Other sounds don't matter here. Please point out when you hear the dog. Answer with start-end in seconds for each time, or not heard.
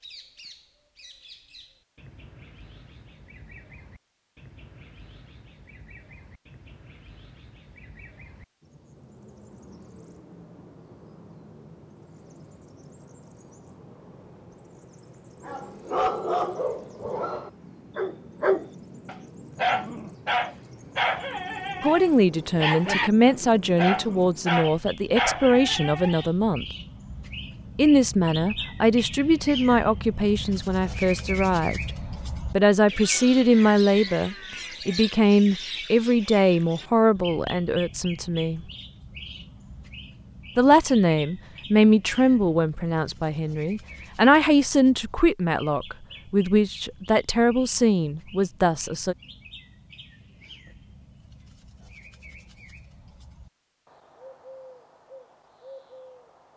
15.4-26.2.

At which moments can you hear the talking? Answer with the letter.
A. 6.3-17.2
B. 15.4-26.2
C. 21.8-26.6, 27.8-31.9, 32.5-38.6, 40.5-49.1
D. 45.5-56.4
C.